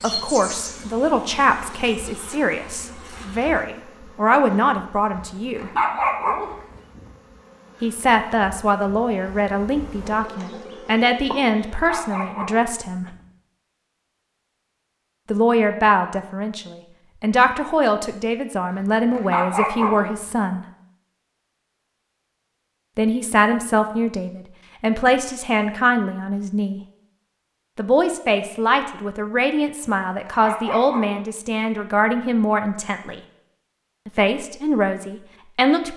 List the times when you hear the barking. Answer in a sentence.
You can hear the barking from 5.5 to 7.1 s, from 11.7 to 13.2 s, from 19.1 to 20.4 s and from 29.8 to 31.1 s.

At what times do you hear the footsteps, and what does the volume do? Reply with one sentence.
You can't hear the footsteps here.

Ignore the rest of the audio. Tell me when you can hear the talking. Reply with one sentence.
The talking can be heard from 0.0 to 5.7 s, from 7.8 to 13.1 s, from 15.3 to 20.6 s, from 22.9 to 26.8 s, from 27.8 to 33.2 s and from 34.0 to 35.9 s.